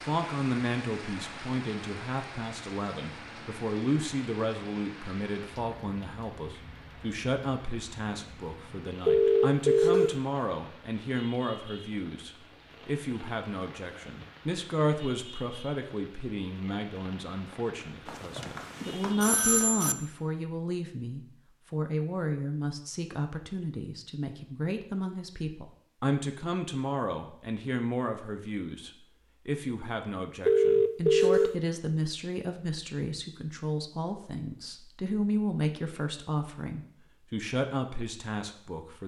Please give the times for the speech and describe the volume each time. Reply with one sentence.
You can hear the speech from 0.0 to 39.0 s, at a steady volume.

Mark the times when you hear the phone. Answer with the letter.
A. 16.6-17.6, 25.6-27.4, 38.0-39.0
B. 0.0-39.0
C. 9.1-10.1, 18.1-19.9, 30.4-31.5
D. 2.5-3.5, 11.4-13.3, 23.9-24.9
C.